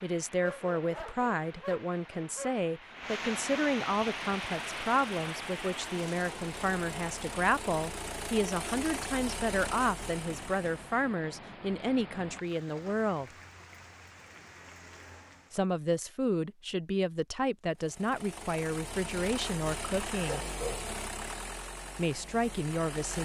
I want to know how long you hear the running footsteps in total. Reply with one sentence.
The running footsteps can't be heard in this clip.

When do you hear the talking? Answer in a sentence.
The talking can be heard from 0.0 to 13.3 s, from 15.5 to 20.4 s and from 21.9 to 23.2 s.